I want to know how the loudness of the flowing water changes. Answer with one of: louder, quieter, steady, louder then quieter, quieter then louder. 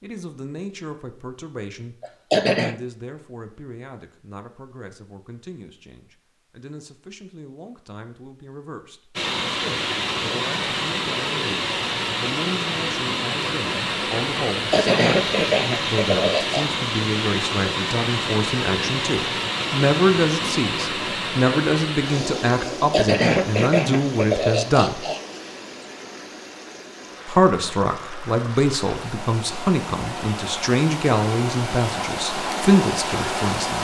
quieter then louder.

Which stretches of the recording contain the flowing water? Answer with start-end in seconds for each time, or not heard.
9.2-33.8.